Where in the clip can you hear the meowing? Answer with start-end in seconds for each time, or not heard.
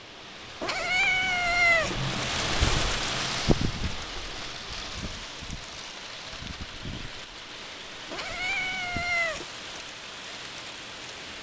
0.6-1.9, 8.1-9.4.